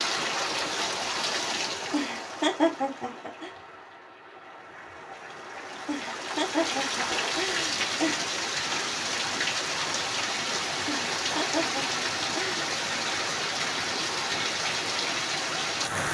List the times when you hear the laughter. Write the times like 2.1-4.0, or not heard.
1.9-3.5, 5.8-8.2, 10.8-12.6.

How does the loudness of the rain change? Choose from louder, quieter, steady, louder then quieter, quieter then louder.
quieter then louder.